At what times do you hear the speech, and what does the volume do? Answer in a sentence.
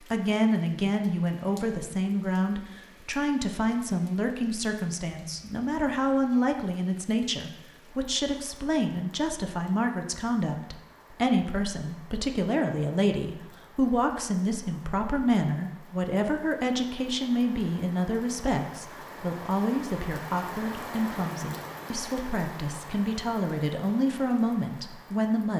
The speech can be heard from 0.0 to 25.5 s, at a steady volume.